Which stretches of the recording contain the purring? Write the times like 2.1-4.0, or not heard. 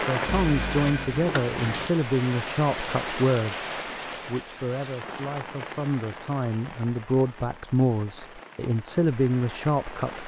not heard.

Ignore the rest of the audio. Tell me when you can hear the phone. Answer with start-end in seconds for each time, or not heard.
0.2-1.9.